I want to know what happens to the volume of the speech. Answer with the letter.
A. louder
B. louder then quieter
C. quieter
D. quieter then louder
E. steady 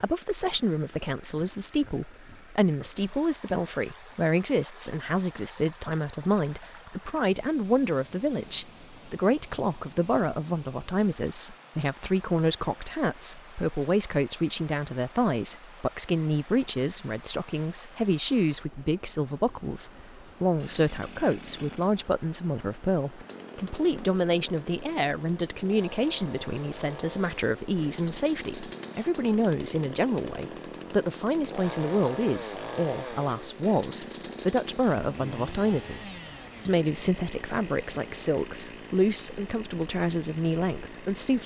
E.